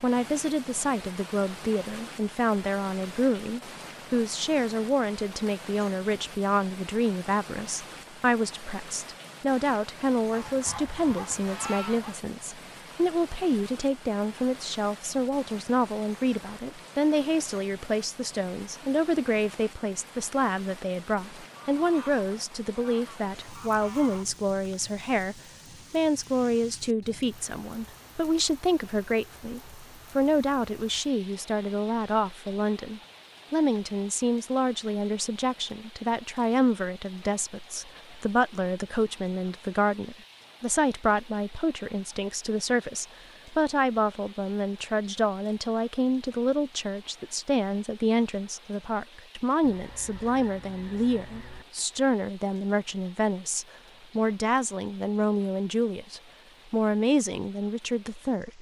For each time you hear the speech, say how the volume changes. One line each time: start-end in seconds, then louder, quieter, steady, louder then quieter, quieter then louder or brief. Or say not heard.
0.0-58.5 steady.